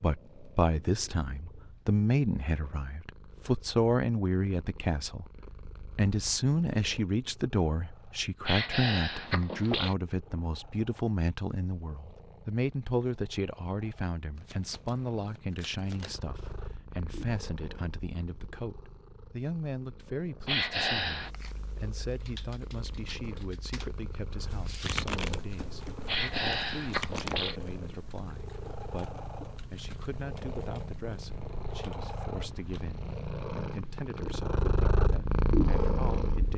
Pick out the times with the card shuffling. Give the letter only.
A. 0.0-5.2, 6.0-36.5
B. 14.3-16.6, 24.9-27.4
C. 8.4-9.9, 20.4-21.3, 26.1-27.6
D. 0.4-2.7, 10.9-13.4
B.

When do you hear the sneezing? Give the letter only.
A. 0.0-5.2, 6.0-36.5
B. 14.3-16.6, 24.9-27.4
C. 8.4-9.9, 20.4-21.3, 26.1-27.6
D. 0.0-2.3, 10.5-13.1
C.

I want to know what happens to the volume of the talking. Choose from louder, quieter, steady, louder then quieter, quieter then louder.
quieter.